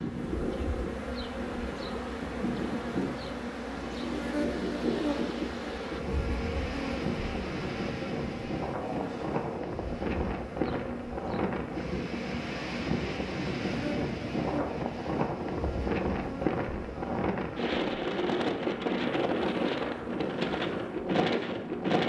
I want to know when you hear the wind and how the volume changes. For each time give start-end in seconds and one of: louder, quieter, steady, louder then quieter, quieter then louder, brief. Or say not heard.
0.0-22.0 louder.